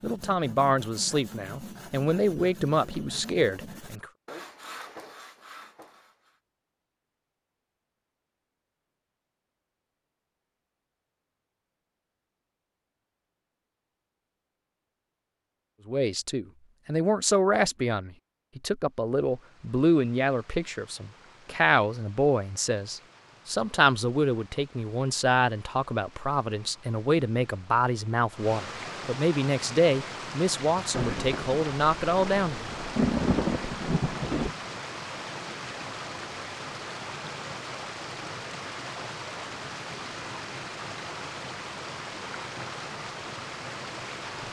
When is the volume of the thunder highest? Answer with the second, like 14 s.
33 s.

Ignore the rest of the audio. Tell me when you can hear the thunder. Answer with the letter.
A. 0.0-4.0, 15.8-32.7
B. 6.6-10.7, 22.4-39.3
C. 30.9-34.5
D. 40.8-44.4
C.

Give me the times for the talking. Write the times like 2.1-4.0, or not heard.
0.0-4.0, 15.8-32.7.